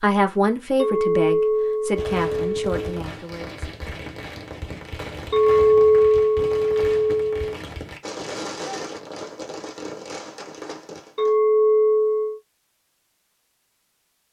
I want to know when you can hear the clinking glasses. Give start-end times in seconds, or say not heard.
0.8-2.8, 5.3-7.5, 11.2-12.4.